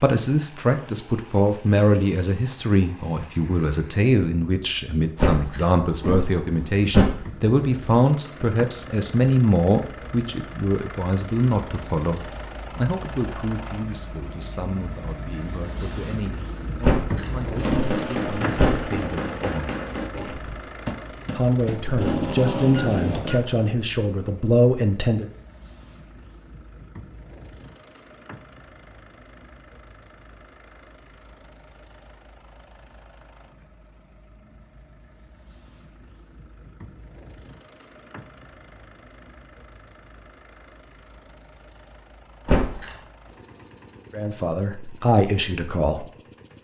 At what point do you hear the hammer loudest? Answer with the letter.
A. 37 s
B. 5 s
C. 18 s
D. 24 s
C.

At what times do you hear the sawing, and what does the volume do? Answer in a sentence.
You can't hear the sawing here.